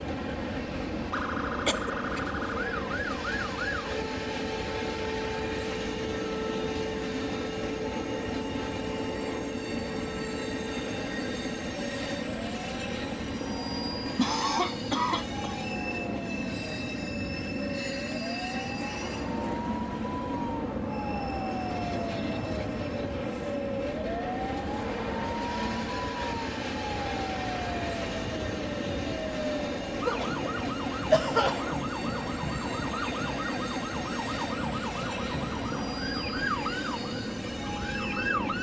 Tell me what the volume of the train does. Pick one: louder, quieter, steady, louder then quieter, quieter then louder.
steady.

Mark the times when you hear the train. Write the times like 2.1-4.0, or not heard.
0.0-38.5.